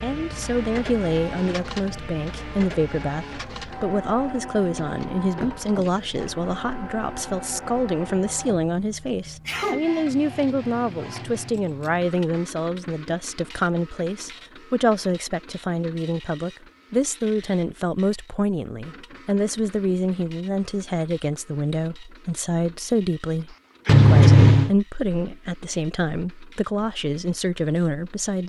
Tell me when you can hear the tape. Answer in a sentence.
The tape can't be heard in this clip.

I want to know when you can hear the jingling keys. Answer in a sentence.
The jingling keys can be heard from 4.8 to 6.3 s, from 10.1 to 12.1 s and from 23.9 to 24.7 s.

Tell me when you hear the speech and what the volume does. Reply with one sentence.
The speech can be heard from 0.0 to 28.4 s, at a steady volume.